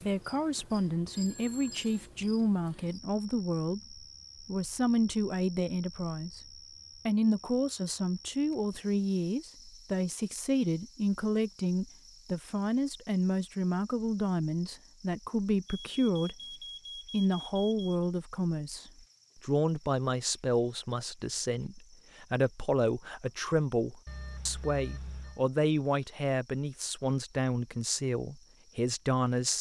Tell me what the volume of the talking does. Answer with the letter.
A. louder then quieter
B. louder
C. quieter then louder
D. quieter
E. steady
E.